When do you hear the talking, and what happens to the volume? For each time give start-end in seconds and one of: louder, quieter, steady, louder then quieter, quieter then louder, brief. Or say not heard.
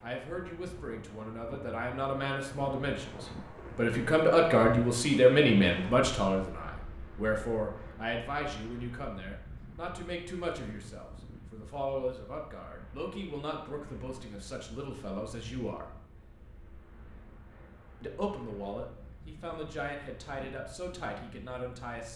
0.0-15.8 louder then quieter
18.0-22.1 steady.